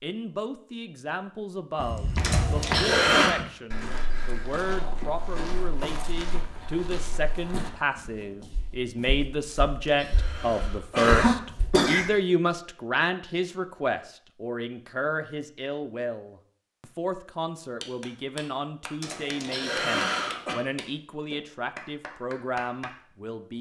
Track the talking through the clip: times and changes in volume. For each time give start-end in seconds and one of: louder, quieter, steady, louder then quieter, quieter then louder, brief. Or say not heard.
0.0-23.5 louder then quieter.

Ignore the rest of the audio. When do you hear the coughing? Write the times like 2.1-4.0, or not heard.
2.2-3.4, 9.5-12.1, 19.0-20.6.